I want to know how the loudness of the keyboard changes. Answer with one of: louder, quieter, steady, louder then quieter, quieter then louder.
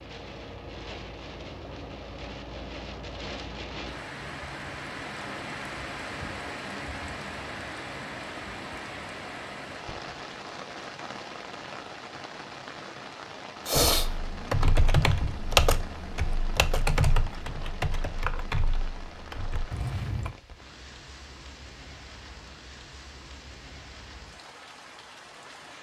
quieter.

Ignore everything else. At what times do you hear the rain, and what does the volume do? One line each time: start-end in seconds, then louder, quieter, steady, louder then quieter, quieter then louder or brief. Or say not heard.
0.0-25.7 quieter.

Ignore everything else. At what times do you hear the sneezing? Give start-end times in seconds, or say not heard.
13.7-14.1.